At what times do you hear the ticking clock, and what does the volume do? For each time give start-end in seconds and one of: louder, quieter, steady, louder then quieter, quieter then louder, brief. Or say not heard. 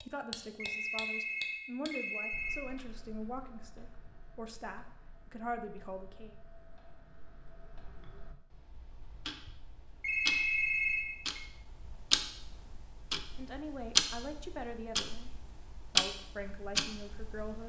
0.0-17.6 quieter then louder.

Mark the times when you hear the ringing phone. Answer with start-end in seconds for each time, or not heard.
0.6-2.6, 10.0-11.4.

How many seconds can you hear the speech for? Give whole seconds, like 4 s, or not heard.
11 s.